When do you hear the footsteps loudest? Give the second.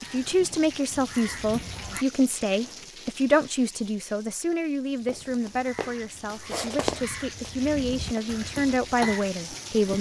7 s.